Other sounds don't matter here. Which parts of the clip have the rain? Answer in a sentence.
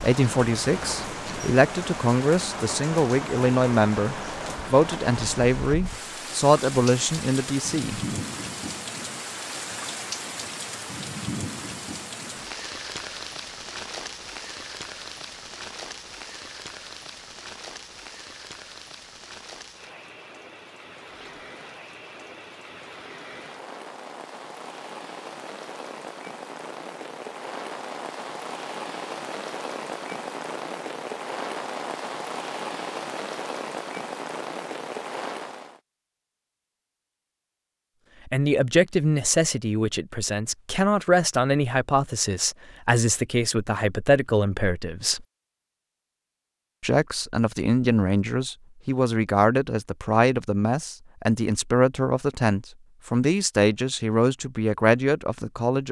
You can hear the rain from 0.0 to 35.8 s.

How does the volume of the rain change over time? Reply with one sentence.
The volume of the rain goes down, then up.